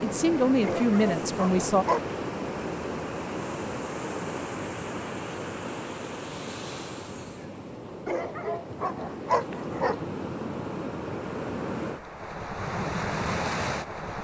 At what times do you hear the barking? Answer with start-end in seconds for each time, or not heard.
0.6-2.1, 8.1-10.0.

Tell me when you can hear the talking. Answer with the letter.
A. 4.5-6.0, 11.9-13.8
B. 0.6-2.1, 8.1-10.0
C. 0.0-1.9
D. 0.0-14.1
C.